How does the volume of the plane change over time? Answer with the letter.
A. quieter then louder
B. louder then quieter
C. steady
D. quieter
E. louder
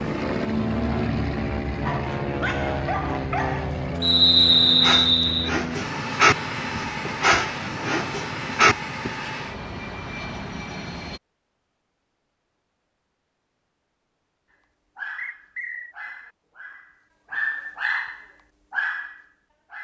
D.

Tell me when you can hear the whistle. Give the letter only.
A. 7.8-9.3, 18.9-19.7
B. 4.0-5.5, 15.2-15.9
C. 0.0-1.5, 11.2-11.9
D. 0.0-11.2
B.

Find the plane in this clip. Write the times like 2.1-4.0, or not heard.
0.0-11.2.